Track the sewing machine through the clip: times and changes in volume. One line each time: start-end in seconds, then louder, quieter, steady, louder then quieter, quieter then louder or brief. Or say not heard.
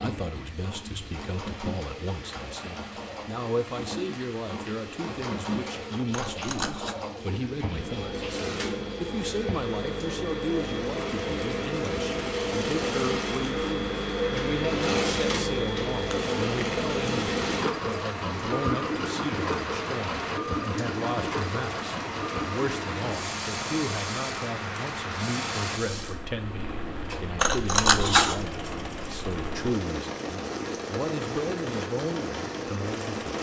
0.0-33.3 louder then quieter.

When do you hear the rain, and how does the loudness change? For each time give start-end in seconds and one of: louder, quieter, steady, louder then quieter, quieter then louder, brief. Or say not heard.
0.0-33.3 louder.